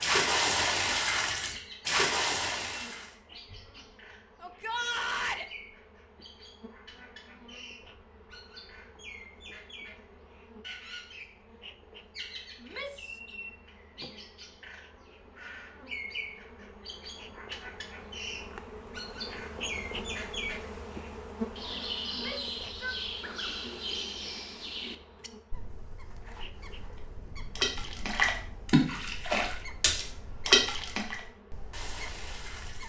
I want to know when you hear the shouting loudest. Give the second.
5 s.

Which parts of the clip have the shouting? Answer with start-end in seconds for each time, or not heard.
4.4-5.5, 12.6-13.2, 22.1-22.9.